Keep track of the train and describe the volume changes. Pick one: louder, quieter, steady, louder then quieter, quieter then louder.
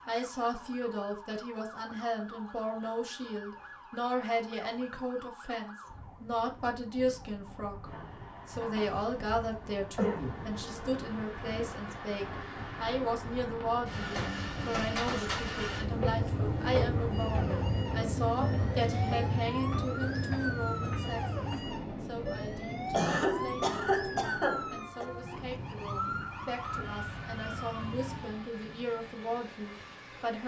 louder then quieter.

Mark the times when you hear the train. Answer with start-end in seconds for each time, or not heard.
7.8-30.4.